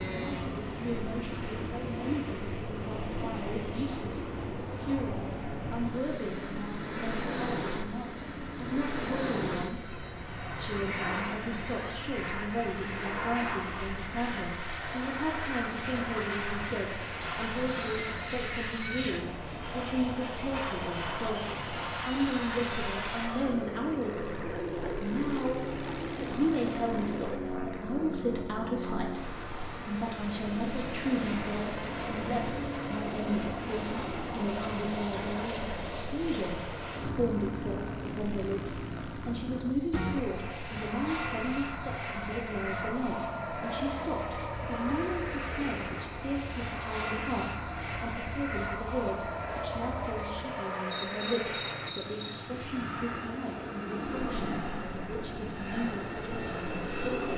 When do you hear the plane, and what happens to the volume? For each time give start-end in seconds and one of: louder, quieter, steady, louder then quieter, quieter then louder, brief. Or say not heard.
0.0-57.3 steady.